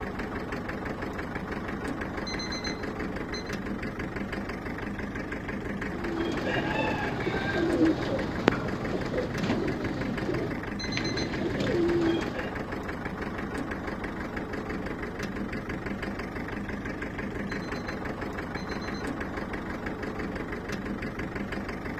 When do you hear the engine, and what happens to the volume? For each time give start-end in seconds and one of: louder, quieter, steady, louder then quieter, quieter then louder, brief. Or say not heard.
0.0-21.9 steady.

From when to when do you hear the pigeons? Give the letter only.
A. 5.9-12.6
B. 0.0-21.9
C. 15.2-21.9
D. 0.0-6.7
A.